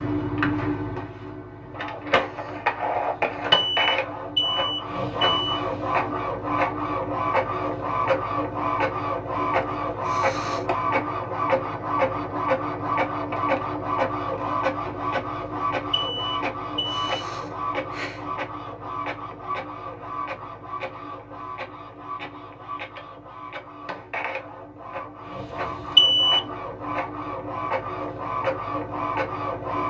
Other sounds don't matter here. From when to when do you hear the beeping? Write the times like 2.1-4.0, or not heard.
3.5-5.6, 15.8-17.1, 25.6-26.4.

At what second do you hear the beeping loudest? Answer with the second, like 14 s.
26 s.